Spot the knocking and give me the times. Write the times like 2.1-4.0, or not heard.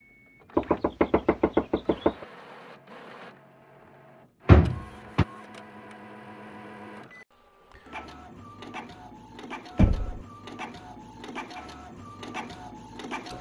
0.6-2.2, 4.5-5.2, 9.8-10.2.